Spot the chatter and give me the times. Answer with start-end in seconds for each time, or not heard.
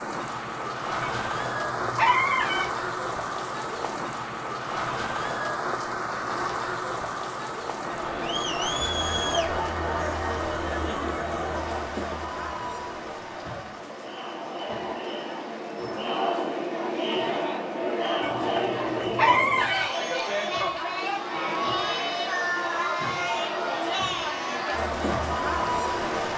7.8-26.3.